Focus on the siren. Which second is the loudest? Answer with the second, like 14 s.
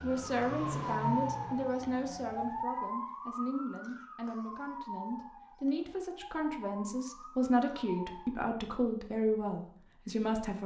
1 s.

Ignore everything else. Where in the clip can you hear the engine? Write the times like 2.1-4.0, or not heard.
0.0-2.6.